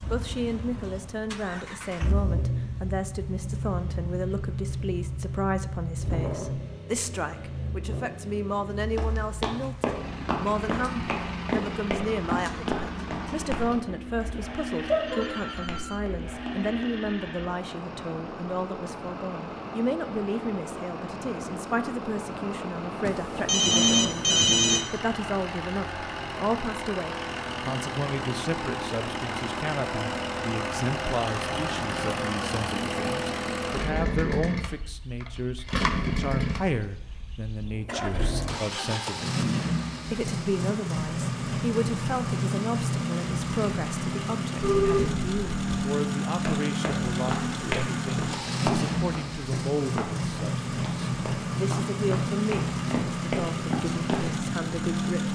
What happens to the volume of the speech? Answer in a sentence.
The loudness of the speech stays about the same.